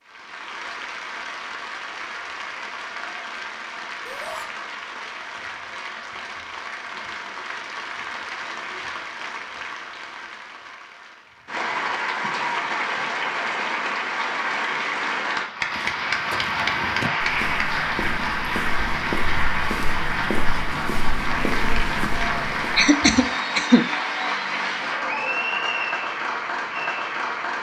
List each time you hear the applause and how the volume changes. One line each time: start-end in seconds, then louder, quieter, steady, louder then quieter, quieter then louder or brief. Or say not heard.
0.0-27.5 louder.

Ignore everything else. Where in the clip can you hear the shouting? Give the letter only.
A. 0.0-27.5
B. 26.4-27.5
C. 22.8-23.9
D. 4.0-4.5
D.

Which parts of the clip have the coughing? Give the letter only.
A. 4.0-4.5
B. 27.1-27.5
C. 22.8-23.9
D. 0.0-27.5
C.